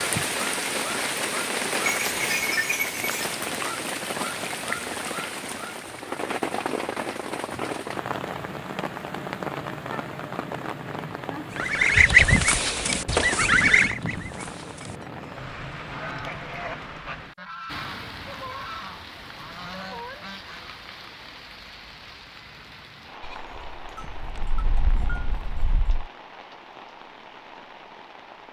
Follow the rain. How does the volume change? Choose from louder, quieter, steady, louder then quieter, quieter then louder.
quieter.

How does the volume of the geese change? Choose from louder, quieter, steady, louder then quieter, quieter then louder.
quieter.